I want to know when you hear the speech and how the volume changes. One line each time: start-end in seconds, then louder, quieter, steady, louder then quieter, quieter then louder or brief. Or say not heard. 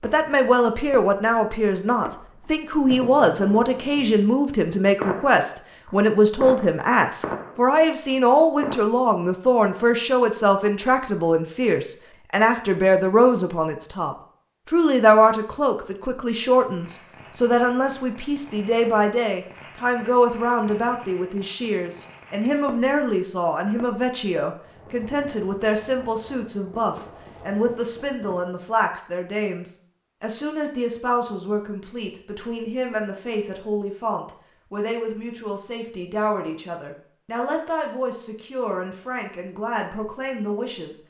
0.0-41.0 quieter.